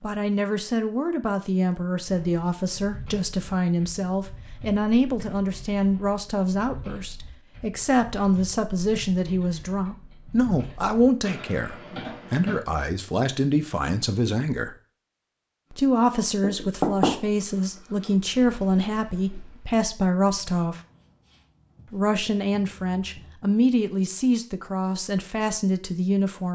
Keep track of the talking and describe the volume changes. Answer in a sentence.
The volume of the talking stays about the same.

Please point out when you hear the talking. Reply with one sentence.
You can hear the talking from 0.0 to 14.8 s, from 15.7 to 20.8 s and from 21.9 to 26.4 s.